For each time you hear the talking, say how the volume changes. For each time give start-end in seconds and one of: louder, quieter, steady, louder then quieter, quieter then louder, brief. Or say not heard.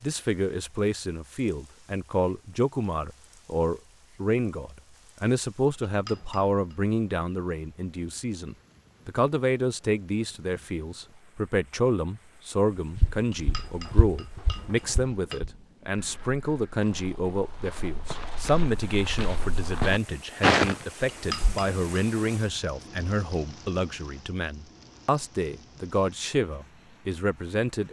0.0-27.8 steady.